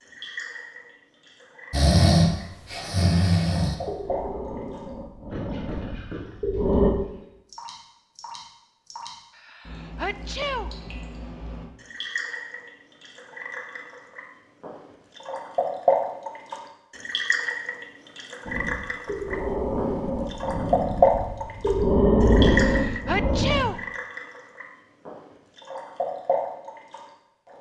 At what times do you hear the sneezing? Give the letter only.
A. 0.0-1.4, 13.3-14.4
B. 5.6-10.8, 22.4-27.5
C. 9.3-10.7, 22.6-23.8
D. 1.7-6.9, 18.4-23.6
C.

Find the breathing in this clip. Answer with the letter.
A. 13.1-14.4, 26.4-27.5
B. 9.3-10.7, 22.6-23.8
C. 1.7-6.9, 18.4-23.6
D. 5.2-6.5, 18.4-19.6
C.